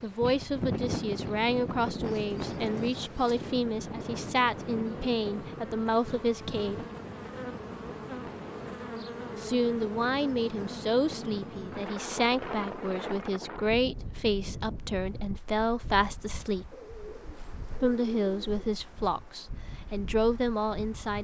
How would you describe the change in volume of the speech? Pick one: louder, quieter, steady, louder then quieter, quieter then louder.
steady.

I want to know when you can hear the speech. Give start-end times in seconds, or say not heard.
0.0-6.8, 9.3-16.7, 17.8-21.2.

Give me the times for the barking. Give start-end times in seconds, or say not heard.
not heard.